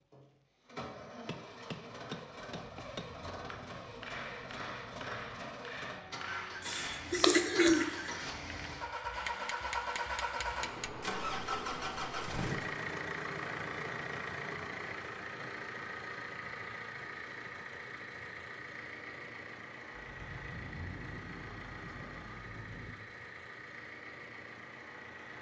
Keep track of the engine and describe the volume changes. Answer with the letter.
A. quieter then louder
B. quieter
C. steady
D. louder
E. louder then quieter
E.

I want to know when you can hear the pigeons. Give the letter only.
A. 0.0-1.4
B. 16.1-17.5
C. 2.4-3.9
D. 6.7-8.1
D.